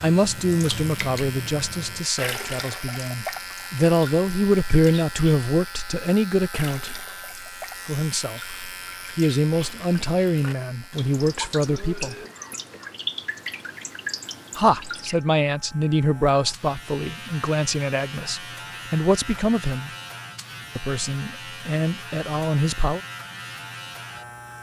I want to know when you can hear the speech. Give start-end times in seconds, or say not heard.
0.0-7.0, 7.8-12.2, 14.6-19.9, 20.8-23.0.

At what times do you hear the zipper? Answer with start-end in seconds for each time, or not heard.
not heard.